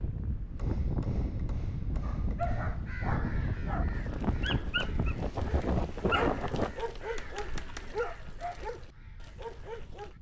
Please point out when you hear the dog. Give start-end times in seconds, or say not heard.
2.0-10.1.